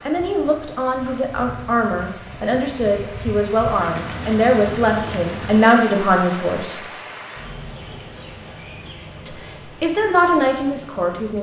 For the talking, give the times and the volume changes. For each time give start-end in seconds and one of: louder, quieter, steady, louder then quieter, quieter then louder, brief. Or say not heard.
0.0-6.8 louder
9.2-11.3 brief.